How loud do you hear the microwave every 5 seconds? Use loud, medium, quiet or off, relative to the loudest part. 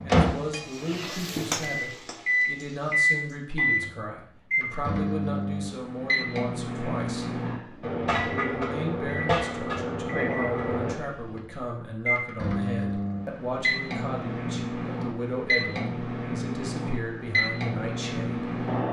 loud, medium, medium, medium.